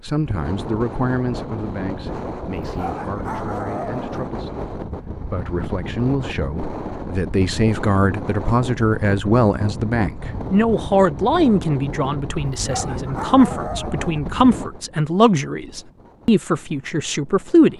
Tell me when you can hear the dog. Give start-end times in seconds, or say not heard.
2.6-4.3, 12.5-14.2.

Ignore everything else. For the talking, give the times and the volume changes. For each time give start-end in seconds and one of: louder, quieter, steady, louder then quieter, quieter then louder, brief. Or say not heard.
0.0-17.7 louder.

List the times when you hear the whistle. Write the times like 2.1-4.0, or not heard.
not heard.